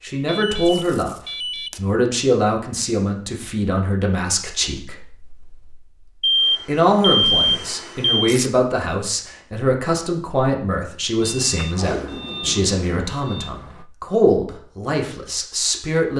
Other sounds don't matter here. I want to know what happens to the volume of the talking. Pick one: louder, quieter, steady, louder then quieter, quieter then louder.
steady.